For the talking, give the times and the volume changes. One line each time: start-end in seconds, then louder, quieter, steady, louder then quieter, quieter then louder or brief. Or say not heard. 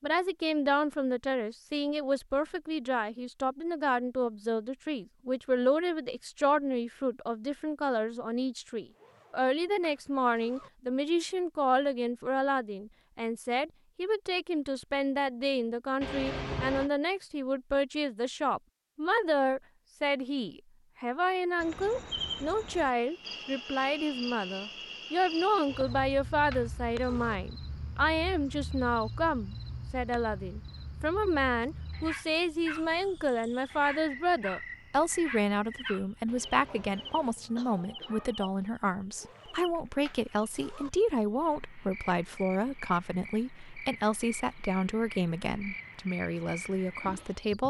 0.0-47.6 steady.